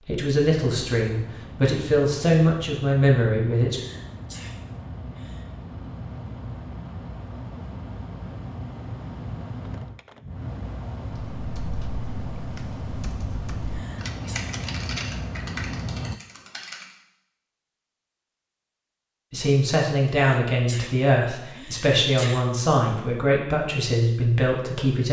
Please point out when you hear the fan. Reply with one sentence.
You can hear the fan from 0.0 to 16.2 s.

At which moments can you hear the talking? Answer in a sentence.
The talking can be heard from 0.1 to 3.8 s and from 19.3 to 25.0 s.